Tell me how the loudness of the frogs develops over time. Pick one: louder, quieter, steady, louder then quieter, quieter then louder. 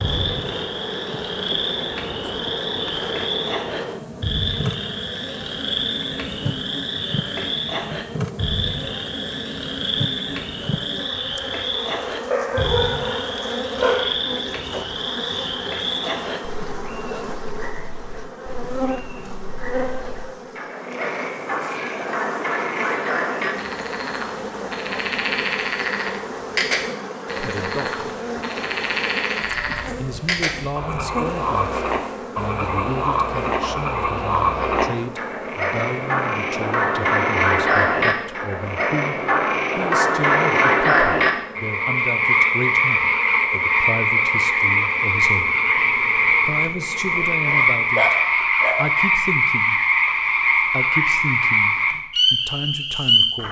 louder.